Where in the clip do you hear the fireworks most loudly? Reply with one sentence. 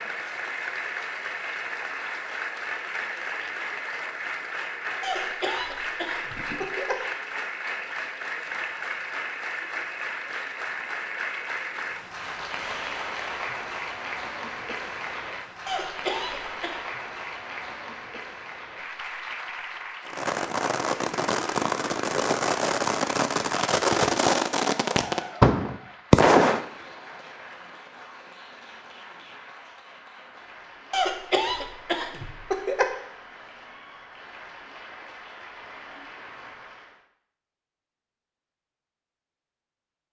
The loudest moment of the fireworks is at 26 seconds.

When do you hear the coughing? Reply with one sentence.
You can hear the coughing from 5.0 to 7.0 s, from 15.7 to 16.8 s and from 30.9 to 33.0 s.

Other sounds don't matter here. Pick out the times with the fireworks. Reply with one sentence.
You can hear the fireworks from 20.1 to 26.6 s.